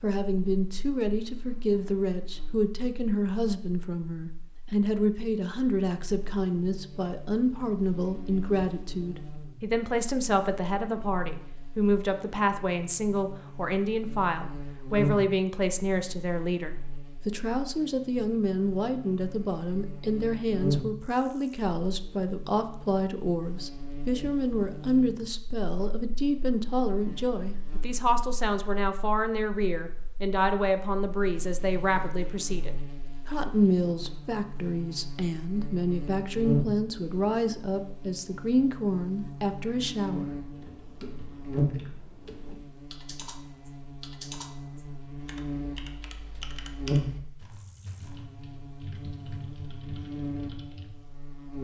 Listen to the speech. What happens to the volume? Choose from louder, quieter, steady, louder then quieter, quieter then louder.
steady.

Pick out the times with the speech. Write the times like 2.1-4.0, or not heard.
0.0-40.3.